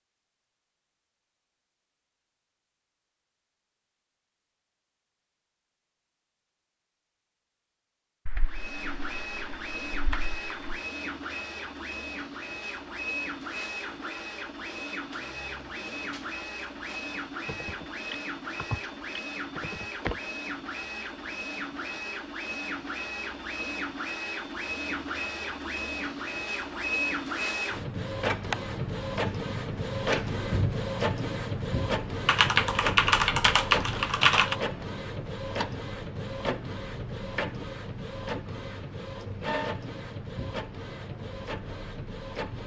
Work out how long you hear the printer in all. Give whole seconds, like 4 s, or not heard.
34 s.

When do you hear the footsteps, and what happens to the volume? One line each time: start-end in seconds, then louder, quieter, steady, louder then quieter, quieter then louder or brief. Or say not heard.
not heard.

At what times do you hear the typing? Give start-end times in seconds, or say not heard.
8.2-10.8, 17.4-20.2, 32.2-34.5.